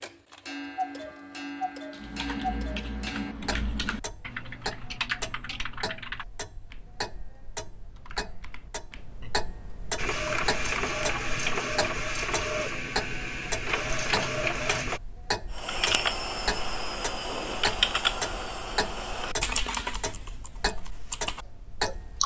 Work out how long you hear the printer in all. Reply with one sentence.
You can hear the printer for 5 seconds altogether.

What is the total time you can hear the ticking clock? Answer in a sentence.
The ticking clock can be heard for 22 seconds in total.